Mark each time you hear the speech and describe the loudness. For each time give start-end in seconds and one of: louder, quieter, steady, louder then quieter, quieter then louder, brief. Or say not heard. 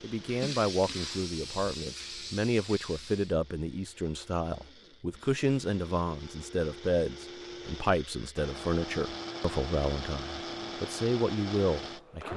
0.0-12.3 steady.